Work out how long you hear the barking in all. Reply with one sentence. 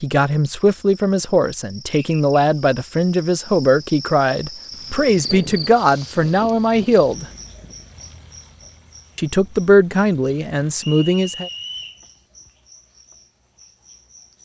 You can't hear the barking here.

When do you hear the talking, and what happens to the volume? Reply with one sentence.
The talking can be heard from 0.0 to 7.2 s, at a steady volume; and briefly from 9.2 to 11.5 s.